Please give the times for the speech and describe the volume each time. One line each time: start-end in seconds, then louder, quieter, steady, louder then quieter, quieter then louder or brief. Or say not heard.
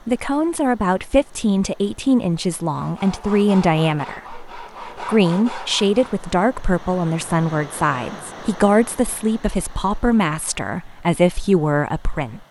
0.1-12.4 steady.